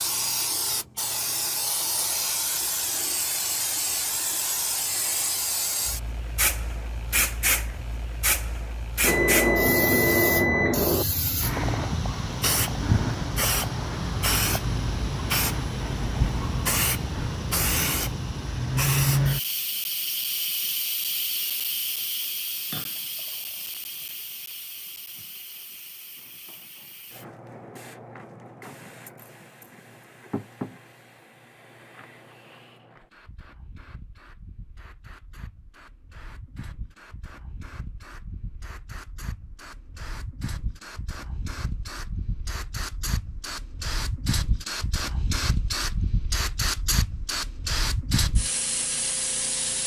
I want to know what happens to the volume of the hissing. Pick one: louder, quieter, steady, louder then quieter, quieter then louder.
quieter then louder.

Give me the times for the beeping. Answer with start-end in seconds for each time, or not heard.
9.0-11.1.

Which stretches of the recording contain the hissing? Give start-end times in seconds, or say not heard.
0.0-49.8.